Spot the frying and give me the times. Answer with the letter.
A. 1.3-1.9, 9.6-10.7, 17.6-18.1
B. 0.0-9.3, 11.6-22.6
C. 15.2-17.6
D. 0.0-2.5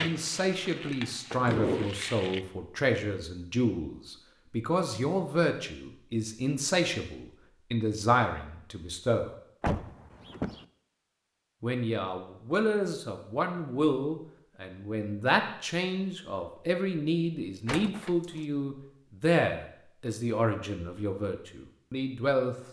D.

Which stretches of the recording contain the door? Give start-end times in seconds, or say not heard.
1.3-1.9, 9.6-10.7, 17.6-18.1.